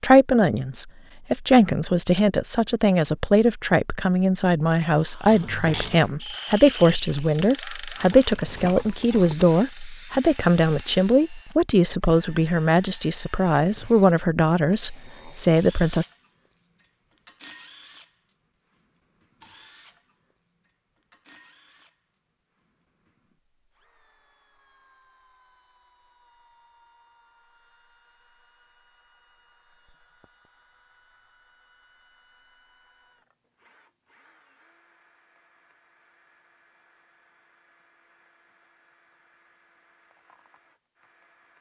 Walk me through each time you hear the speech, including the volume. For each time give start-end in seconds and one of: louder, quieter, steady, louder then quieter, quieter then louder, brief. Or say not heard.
0.0-16.1 steady.